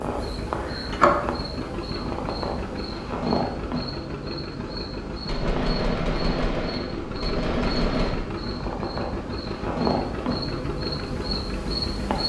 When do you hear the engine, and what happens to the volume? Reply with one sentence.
The engine can be heard from 0.0 to 12.2 s, at a steady volume.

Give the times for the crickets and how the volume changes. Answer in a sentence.
The crickets can be heard from 0.0 to 12.2 s, getting quieter then louder.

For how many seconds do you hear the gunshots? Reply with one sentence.
The gunshots can be heard for 3 seconds in total.